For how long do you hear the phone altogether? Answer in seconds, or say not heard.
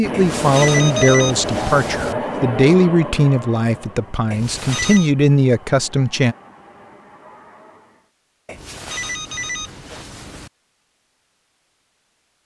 5 s.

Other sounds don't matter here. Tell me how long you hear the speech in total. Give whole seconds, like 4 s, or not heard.
6 s.